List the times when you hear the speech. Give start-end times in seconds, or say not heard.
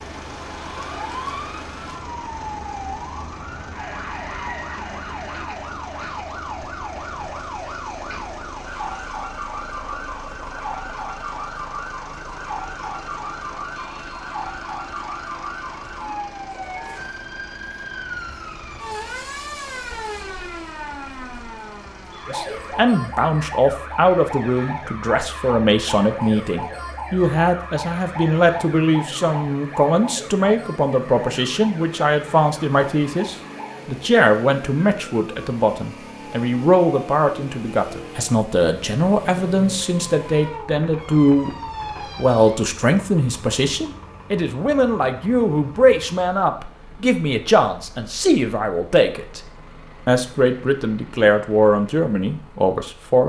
22.3-41.5, 42.1-49.4, 50.0-53.2.